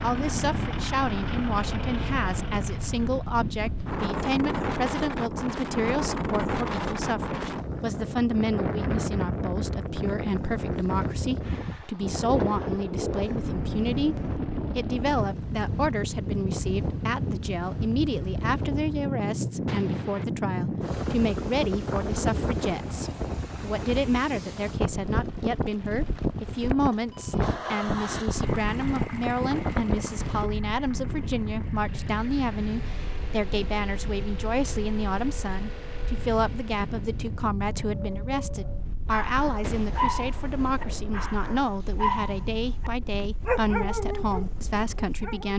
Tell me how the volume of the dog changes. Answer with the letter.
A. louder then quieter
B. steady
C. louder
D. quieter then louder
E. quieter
C.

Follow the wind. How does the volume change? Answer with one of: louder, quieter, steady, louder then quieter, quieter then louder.
quieter.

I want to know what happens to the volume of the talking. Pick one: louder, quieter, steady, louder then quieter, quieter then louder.
steady.